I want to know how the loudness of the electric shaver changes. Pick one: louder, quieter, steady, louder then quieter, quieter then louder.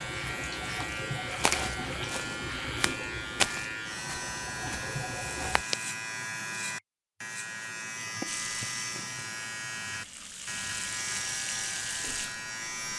steady.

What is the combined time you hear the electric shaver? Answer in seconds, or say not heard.
13 s.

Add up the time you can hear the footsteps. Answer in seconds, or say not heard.
5 s.